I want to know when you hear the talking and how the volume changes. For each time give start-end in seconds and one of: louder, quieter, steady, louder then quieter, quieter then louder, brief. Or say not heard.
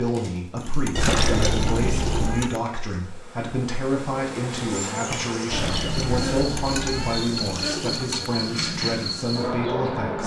0.0-10.2 steady.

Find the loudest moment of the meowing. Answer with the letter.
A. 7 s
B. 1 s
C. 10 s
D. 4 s
B.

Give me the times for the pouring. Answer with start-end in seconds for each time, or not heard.
0.6-2.6, 6.3-8.3.